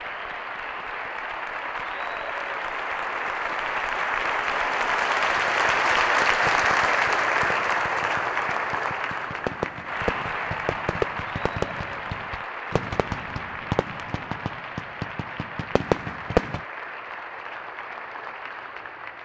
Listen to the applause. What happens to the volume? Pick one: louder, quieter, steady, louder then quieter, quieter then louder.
louder then quieter.